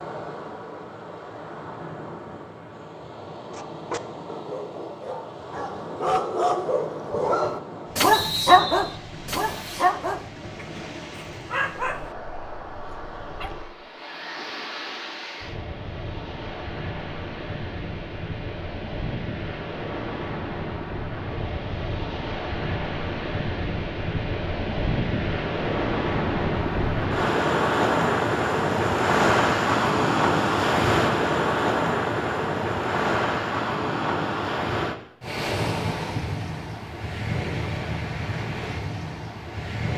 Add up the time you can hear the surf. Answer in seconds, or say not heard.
40 s.